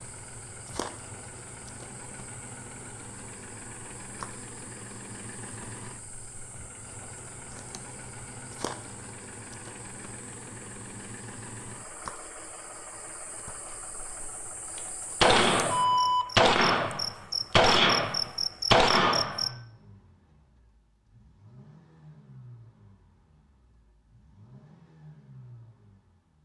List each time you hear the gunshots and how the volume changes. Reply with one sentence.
The gunshots can be heard from 14.8 to 19.5 s, getting quieter then louder.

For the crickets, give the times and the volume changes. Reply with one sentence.
You can hear the crickets from 0.0 to 19.5 s, getting louder.